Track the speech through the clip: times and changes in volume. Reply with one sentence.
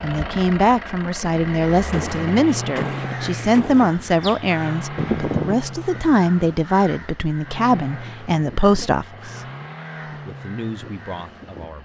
The speech can be heard from 0.0 to 11.8 s, getting quieter.